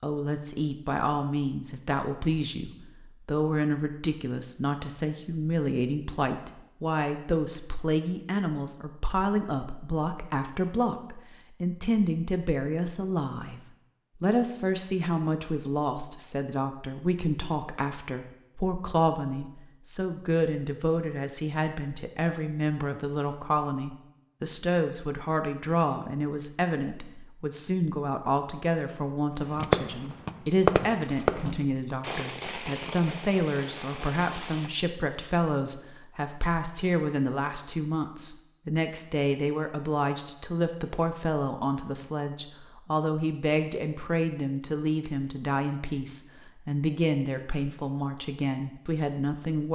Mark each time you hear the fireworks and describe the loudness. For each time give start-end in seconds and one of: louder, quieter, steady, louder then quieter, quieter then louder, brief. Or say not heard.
29.4-34.7 quieter.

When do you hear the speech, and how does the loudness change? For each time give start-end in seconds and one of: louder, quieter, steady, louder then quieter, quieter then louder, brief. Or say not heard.
0.0-13.6 steady
14.2-49.7 steady.